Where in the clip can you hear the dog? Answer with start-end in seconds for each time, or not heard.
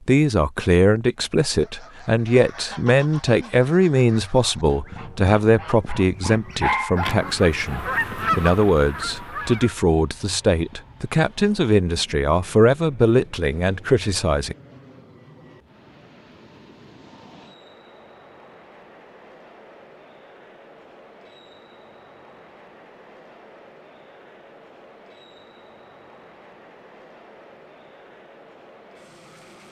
6.6-7.9.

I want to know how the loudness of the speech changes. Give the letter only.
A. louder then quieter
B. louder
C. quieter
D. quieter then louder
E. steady
E.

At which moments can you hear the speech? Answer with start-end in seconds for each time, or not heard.
0.1-14.6.